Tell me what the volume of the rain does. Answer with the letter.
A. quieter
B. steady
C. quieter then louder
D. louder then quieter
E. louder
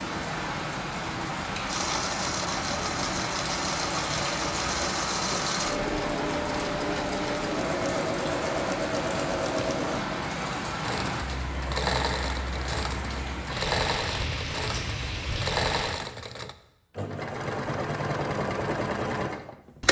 B.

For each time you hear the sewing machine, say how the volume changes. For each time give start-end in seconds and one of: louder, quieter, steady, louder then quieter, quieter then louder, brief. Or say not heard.
1.6-19.8 steady.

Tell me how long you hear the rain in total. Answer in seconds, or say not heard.
16 s.